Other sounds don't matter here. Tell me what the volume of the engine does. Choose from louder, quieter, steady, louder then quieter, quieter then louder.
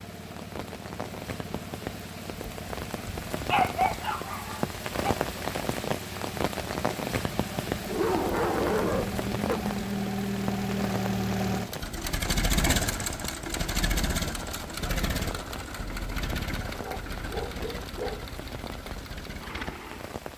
louder then quieter.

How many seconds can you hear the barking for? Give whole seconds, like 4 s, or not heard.
5 s.